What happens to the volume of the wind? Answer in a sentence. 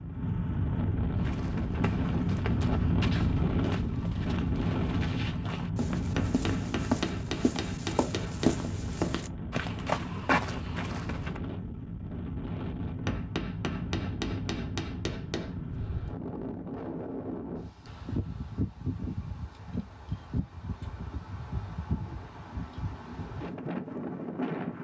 The volume of the wind goes down.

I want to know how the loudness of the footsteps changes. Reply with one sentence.
The volume of the footsteps goes up.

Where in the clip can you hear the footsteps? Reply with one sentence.
The footsteps can be heard from 1.1 to 11.4 s.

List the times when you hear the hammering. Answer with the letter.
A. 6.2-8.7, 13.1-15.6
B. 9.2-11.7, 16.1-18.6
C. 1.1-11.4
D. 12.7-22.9
A.